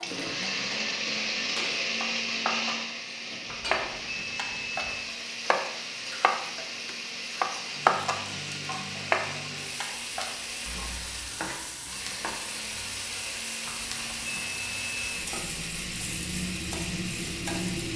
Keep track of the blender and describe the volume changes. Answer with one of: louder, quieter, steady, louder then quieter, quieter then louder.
quieter.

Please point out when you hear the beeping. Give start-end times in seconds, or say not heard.
3.5-5.0, 13.7-15.2.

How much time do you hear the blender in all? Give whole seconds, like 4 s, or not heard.
18 s.